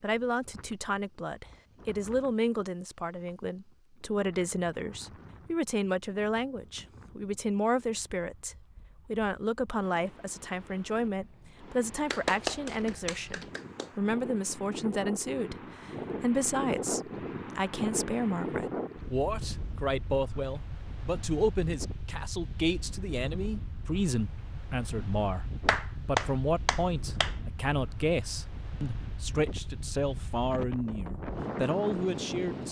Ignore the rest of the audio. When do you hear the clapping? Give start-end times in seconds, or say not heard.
12.1-13.8, 25.6-27.4.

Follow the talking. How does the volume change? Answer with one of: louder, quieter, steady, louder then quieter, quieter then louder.
steady.